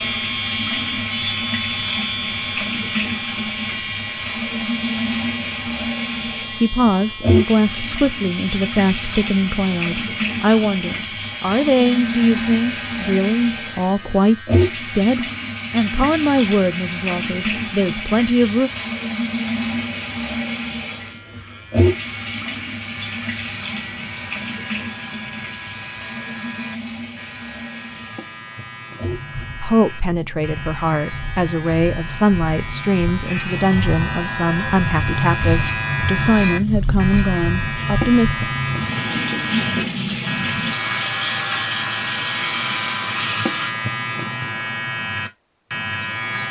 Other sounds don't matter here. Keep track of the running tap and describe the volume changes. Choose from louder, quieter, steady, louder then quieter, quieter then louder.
quieter then louder.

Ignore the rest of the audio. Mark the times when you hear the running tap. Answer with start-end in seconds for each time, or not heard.
0.0-43.7.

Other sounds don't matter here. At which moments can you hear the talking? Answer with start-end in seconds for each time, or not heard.
6.5-18.7, 29.6-38.3.